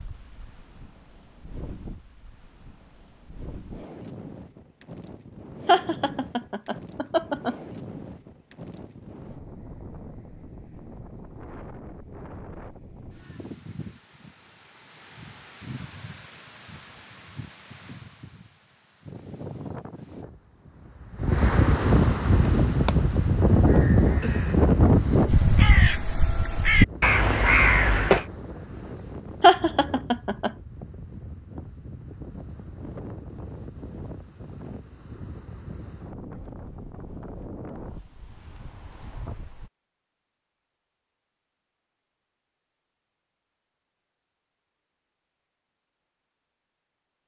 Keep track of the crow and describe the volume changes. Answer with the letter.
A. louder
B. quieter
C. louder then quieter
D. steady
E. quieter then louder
A.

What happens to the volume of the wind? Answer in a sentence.
The volume of the wind goes up, then down.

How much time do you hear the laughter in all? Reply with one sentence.
The laughter can be heard for 3 seconds in total.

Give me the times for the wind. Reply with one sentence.
The wind can be heard from 0.0 to 39.7 s.